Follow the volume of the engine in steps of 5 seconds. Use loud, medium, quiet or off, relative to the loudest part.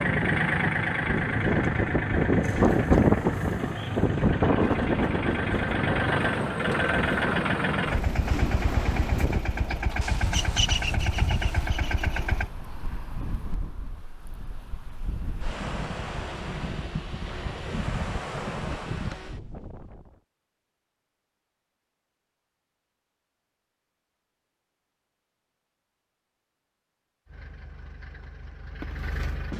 loud, loud, loud, off, off, quiet.